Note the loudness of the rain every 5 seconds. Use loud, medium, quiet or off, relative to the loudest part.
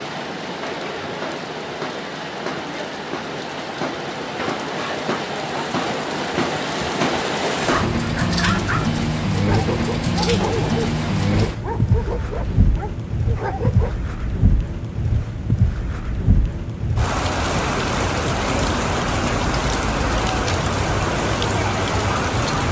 medium, loud, loud, loud, loud.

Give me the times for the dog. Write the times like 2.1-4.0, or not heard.
7.7-13.9.